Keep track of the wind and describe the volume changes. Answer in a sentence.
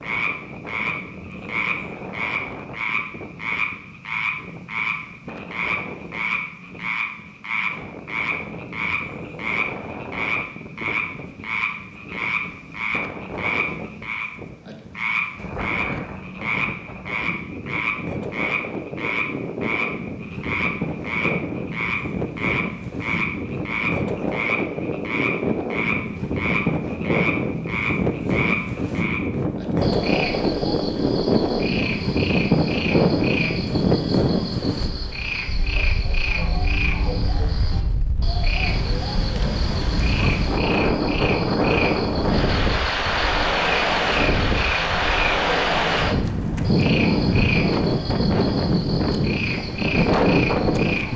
The volume of the wind goes up.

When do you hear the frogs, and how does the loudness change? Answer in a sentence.
The frogs can be heard from 0.0 to 51.1 s, at a steady volume.